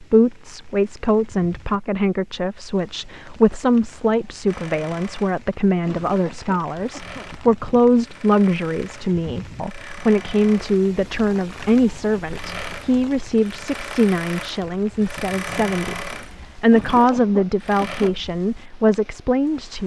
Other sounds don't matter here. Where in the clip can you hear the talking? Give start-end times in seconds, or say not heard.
0.0-19.8.